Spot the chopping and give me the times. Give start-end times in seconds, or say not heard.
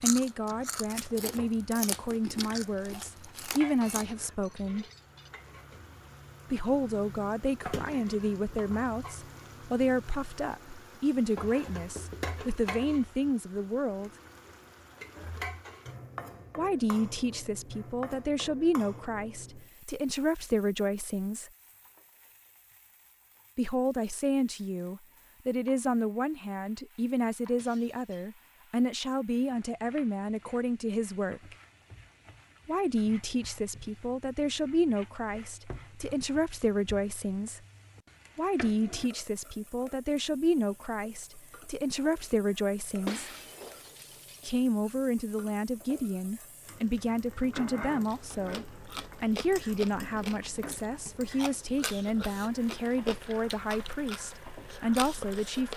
not heard.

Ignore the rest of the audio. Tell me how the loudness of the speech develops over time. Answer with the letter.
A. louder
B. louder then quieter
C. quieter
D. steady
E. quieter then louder
D.